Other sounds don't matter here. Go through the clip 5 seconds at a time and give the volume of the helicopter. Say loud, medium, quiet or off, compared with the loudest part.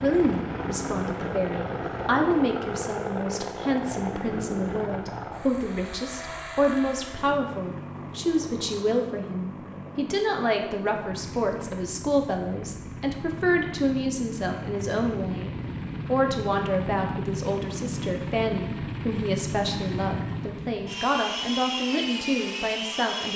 loud, medium, medium, loud, loud.